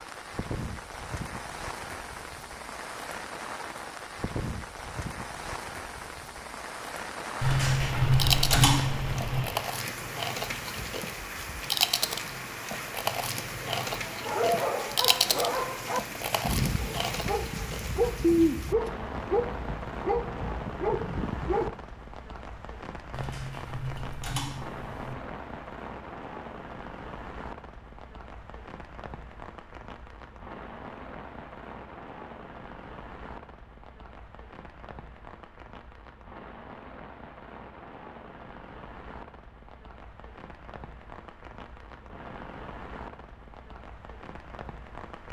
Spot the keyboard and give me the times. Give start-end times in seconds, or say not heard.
7.4-9.4, 23.1-25.1.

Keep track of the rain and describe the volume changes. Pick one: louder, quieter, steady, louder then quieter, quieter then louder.
quieter.